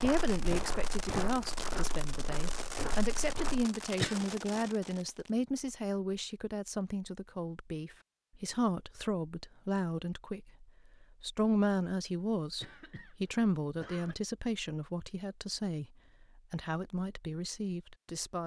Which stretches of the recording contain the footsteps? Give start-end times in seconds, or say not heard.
0.0-3.6.